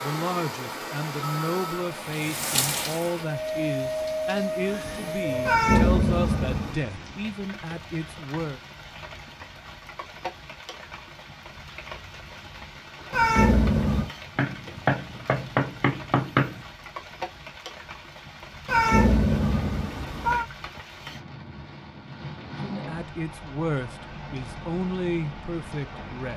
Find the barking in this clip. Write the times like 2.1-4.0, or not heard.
not heard.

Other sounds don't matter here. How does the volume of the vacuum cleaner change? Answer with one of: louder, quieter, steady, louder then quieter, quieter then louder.
quieter then louder.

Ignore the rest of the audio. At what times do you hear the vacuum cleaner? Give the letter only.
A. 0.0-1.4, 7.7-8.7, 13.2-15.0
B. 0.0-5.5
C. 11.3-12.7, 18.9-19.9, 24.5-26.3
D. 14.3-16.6
B.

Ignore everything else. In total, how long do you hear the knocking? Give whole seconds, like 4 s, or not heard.
2 s.